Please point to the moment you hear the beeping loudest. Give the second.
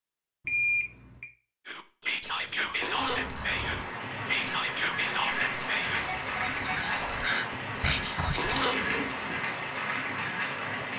1 s.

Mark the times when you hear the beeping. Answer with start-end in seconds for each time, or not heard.
0.5-1.2, 5.8-6.8.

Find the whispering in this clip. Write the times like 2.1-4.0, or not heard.
1.6-8.7.